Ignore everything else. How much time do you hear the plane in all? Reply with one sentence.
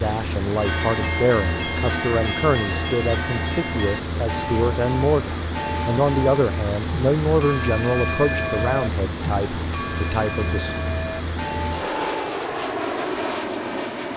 The plane can be heard for 14 seconds in total.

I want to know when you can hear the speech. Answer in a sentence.
The speech can be heard from 0.0 to 10.8 s.